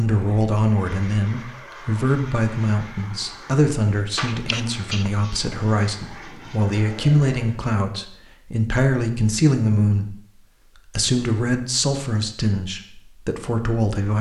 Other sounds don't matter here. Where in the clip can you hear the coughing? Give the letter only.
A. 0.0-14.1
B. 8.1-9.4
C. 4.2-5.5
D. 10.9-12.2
C.